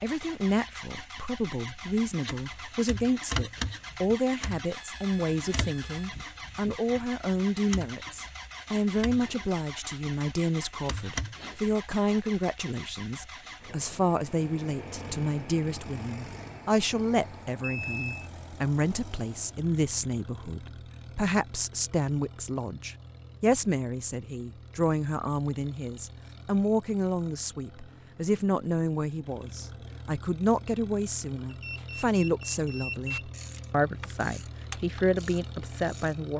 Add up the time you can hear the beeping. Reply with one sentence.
You can hear the beeping for 4 seconds altogether.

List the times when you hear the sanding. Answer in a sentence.
The sanding can't be heard in this clip.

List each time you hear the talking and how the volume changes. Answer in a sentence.
You can hear the talking from 0.0 to 36.3 s, at a steady volume.